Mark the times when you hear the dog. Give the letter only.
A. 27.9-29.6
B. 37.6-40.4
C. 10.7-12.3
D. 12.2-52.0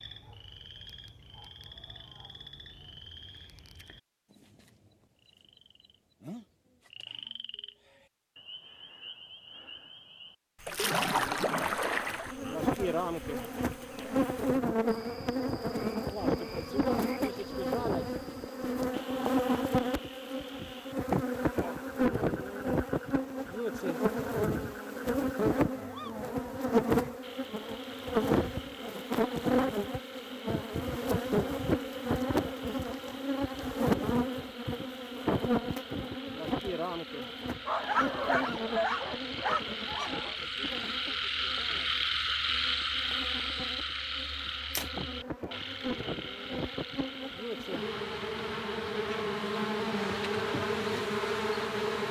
B.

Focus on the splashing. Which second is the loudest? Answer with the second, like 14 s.
11 s.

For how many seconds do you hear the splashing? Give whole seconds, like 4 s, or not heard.
2 s.